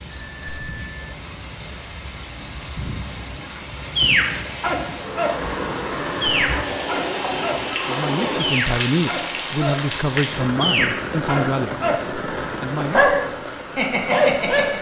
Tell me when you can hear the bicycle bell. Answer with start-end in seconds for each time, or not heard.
0.1-1.1, 5.8-6.9, 11.7-12.6.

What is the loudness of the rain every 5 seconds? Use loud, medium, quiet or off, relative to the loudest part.
medium, loud, loud.